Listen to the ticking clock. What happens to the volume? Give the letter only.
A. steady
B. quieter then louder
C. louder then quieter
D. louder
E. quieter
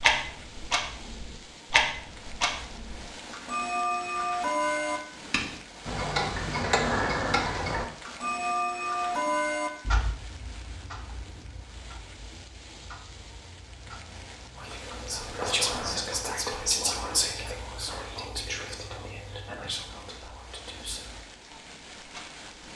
E.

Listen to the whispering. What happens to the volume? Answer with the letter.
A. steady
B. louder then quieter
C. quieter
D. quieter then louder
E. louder
C.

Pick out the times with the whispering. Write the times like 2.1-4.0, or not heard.
14.6-21.1.